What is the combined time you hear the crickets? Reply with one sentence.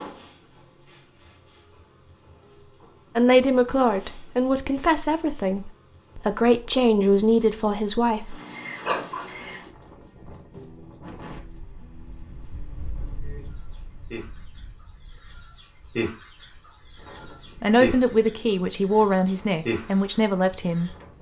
You can hear the crickets for 21 seconds altogether.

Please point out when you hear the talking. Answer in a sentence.
The talking can be heard from 3.1 to 8.3 s and from 17.6 to 20.9 s.